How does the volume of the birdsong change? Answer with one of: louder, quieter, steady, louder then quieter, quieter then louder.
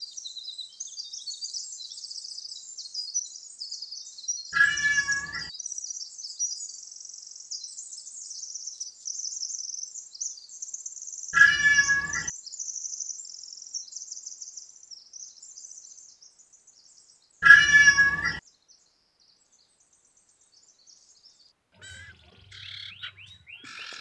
quieter.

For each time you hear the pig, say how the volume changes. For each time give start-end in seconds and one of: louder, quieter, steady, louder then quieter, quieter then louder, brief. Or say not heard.
not heard.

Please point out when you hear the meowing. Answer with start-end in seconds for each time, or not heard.
4.5-5.5, 11.3-12.3, 17.4-18.4.